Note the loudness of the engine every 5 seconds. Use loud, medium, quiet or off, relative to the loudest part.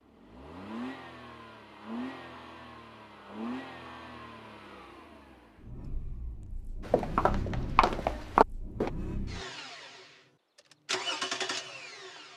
medium, medium, loud.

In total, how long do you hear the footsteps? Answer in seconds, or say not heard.
2 s.